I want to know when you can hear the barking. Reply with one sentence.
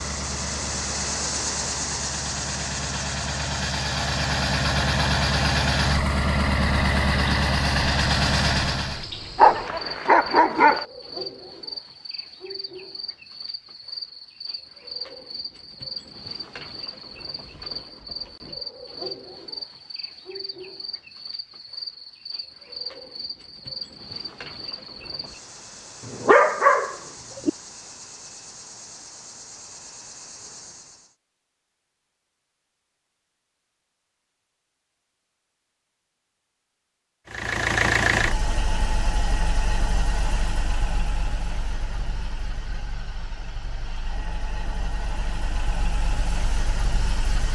The barking can be heard from 9.3 to 10.8 s and from 26.1 to 27.5 s.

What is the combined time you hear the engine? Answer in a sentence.
You can hear the engine for 19 seconds altogether.